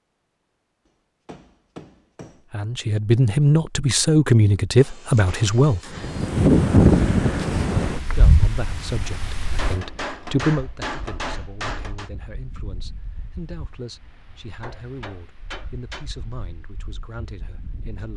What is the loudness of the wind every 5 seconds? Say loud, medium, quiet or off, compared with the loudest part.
off, loud, quiet, quiet.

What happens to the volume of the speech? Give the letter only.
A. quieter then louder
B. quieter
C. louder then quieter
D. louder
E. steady
B.